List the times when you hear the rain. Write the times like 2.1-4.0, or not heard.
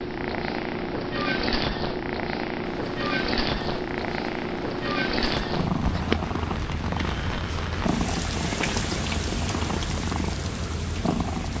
2.6-11.5.